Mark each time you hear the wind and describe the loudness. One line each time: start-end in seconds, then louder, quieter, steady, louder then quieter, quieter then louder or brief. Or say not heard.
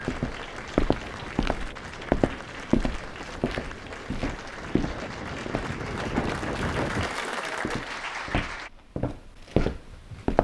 0.0-7.2 louder.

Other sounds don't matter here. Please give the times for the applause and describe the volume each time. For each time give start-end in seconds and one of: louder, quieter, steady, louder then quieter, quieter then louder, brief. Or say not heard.
0.0-8.7 louder.